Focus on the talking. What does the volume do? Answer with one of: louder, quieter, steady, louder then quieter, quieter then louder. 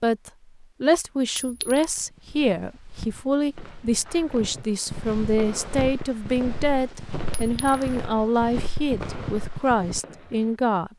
steady.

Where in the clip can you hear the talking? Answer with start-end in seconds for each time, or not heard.
0.0-10.9.